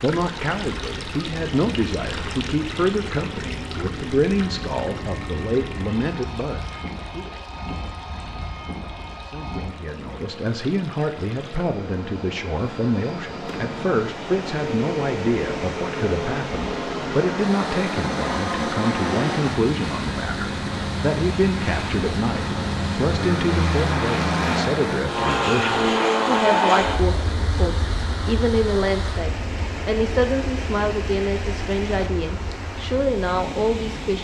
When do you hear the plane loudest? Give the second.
26 s.